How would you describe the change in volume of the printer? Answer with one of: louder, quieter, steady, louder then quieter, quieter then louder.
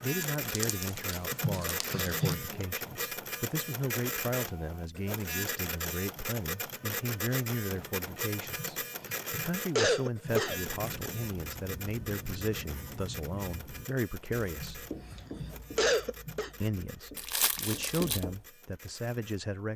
quieter.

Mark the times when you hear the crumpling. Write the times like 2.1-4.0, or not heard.
0.4-2.3, 17.1-18.2.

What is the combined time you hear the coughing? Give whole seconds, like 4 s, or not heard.
6 s.